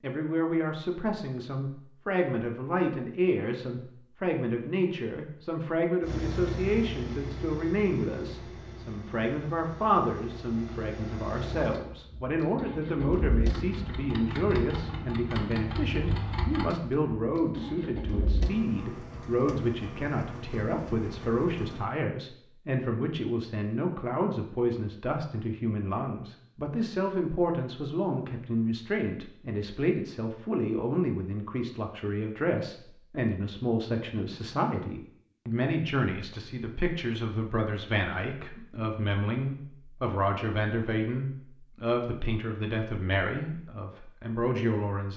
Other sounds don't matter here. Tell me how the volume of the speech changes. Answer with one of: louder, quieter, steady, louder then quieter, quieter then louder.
steady.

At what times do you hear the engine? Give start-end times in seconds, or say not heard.
6.0-21.9.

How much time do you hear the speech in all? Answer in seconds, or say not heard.
45 s.